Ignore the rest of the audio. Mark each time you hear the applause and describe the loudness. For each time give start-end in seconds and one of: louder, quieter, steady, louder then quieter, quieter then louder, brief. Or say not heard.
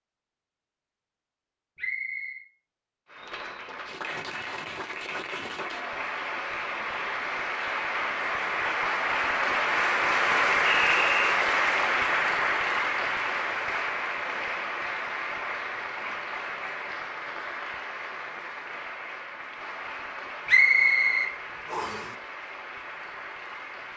3.0-23.9 louder then quieter.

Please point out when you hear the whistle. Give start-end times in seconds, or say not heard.
1.8-2.4, 10.7-11.2, 20.4-22.0.